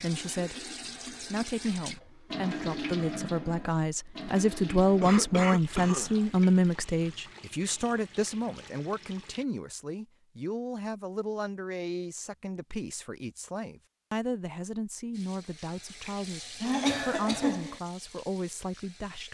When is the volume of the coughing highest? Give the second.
17 s.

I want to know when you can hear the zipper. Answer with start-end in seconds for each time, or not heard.
not heard.